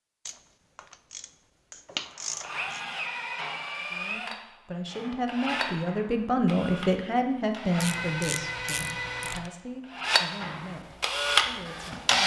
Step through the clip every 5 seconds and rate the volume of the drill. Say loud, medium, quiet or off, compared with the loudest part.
medium, medium, loud.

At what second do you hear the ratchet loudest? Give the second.
2 s.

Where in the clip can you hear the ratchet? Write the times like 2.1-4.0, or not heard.
0.2-2.8, 7.8-9.5.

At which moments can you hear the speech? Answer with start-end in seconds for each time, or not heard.
3.8-12.1.